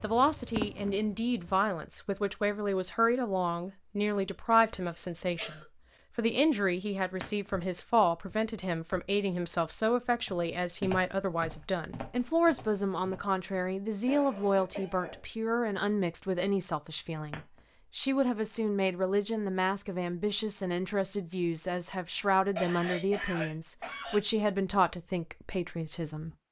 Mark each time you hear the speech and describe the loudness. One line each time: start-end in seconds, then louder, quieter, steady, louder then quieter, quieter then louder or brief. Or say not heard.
0.0-26.4 steady.